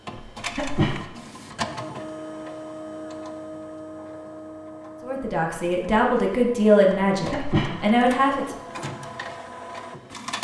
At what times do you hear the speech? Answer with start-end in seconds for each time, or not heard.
5.0-8.6.